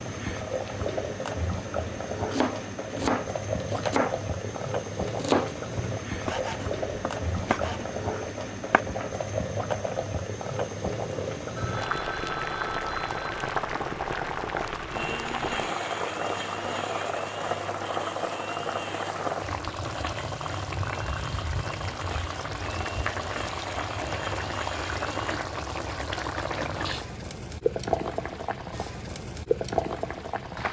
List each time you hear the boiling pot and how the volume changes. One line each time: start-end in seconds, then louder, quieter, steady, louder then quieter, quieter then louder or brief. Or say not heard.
0.0-30.6 steady.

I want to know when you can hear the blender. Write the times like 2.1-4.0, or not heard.
14.9-25.4.